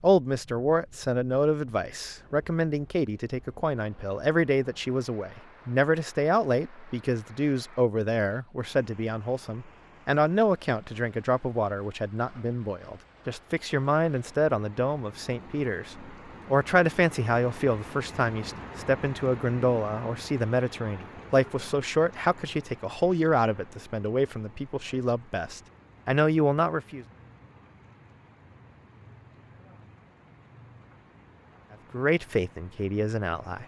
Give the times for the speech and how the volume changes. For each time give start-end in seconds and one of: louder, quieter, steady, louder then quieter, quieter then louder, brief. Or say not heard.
0.0-27.1 steady
31.9-33.6 brief.